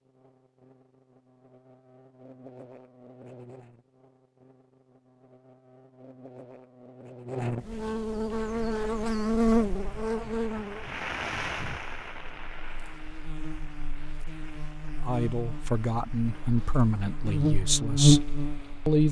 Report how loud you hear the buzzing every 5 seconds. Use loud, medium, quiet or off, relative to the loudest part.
quiet, loud, medium, loud.